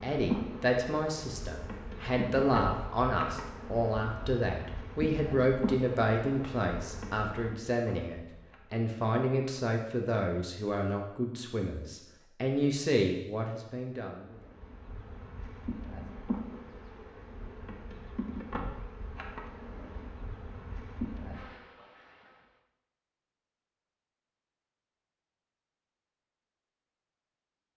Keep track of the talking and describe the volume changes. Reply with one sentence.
The loudness of the talking stays about the same.